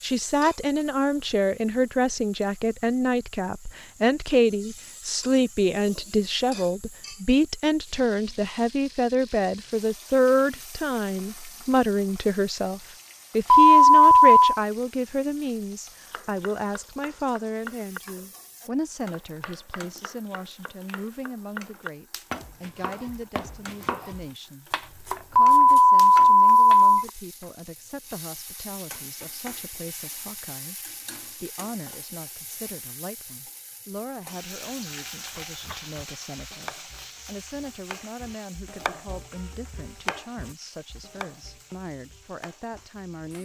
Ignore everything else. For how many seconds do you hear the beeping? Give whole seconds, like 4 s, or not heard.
3 s.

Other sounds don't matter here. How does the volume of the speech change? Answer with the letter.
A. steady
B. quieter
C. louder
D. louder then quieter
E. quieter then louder
B.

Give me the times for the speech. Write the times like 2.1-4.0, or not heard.
0.0-24.7, 25.3-43.3.